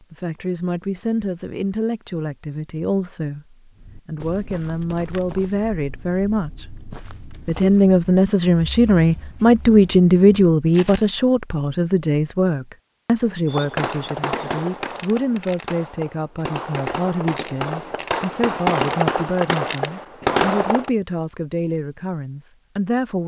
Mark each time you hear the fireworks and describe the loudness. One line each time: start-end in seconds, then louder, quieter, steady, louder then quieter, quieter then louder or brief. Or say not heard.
13.4-20.9 quieter then louder.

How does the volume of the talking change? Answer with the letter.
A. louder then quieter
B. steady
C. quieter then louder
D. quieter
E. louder
A.